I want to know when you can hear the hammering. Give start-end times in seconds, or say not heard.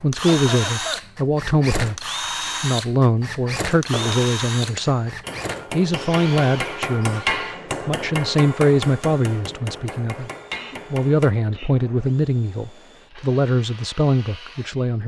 3.9-11.3.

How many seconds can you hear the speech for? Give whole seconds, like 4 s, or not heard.
14 s.